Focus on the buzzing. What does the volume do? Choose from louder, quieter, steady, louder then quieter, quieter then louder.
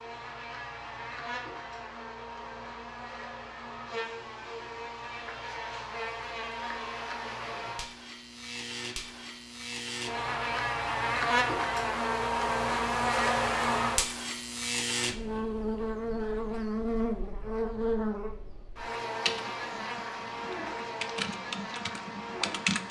louder then quieter.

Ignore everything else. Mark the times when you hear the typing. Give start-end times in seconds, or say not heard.
19.1-22.8.